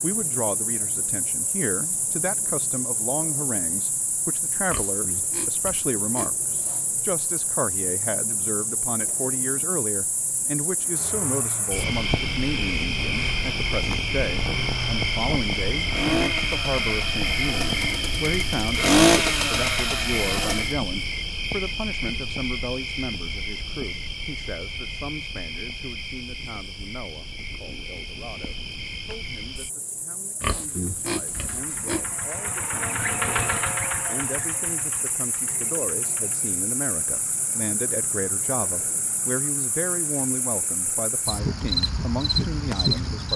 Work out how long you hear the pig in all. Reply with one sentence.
The pig can be heard for 4 seconds in total.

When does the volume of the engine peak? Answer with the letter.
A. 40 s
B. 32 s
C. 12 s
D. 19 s
D.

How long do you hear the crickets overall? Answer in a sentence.
You can hear the crickets for 43 seconds altogether.